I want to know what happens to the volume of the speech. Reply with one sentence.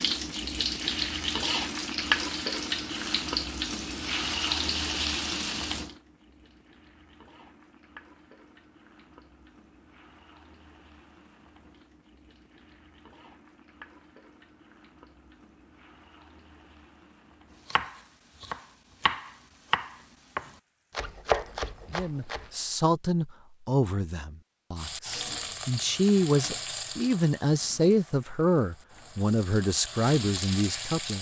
The loudness of the speech goes down, then up.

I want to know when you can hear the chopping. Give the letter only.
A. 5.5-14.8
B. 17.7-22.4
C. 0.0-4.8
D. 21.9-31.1
B.